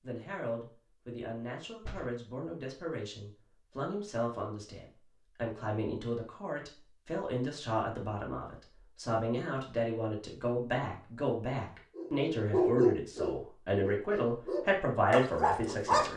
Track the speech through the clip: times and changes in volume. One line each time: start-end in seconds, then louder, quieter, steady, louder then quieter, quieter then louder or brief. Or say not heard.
0.0-16.1 louder.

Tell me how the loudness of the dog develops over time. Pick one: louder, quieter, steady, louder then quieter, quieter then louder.
quieter then louder.